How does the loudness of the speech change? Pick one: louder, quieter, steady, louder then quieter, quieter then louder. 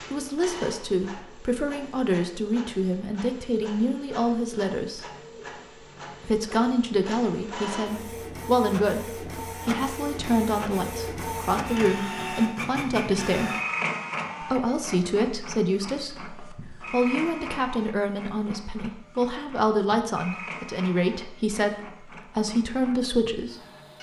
steady.